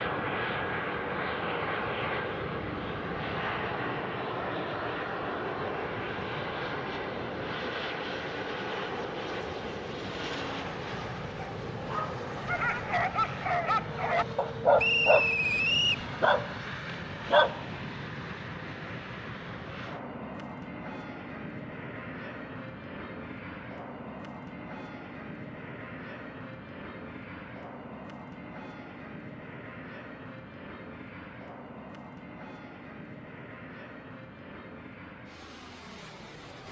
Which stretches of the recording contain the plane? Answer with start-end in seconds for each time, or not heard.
0.0-36.6.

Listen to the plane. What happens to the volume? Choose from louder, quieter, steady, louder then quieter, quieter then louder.
quieter.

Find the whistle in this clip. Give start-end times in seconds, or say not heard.
14.8-16.1.